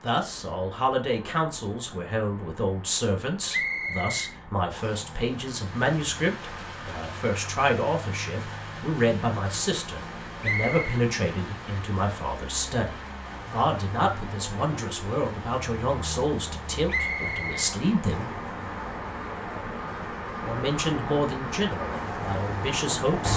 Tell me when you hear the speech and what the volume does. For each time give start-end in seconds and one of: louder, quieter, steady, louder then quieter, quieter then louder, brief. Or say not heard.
0.0-18.3 steady
20.4-23.3 brief.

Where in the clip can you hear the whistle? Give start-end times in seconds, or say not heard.
3.5-5.1, 10.4-11.0, 16.9-18.2.